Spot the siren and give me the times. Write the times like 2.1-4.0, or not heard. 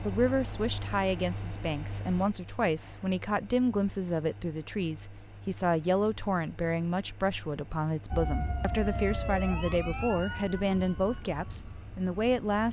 8.1-12.6.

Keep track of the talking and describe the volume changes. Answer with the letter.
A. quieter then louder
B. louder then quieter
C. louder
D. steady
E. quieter
D.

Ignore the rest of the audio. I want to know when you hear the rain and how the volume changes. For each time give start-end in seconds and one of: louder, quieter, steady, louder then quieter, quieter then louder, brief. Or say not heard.
not heard.